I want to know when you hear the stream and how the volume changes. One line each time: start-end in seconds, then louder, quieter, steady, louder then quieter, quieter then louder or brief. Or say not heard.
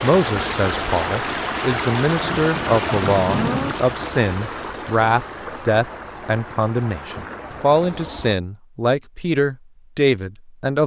0.0-8.3 quieter.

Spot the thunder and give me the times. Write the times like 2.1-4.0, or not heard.
2.2-3.8.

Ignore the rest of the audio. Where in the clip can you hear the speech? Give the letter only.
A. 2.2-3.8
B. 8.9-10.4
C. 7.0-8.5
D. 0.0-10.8
D.